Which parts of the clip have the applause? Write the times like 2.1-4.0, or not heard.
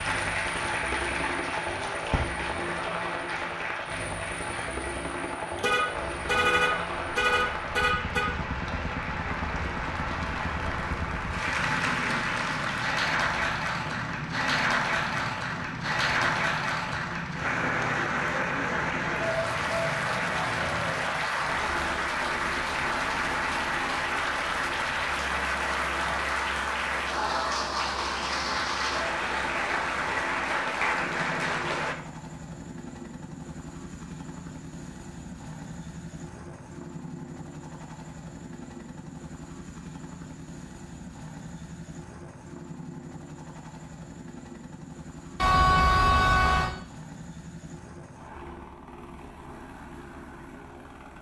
0.0-31.9.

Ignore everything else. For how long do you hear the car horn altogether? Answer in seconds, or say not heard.
4 s.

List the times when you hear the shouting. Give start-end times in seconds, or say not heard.
not heard.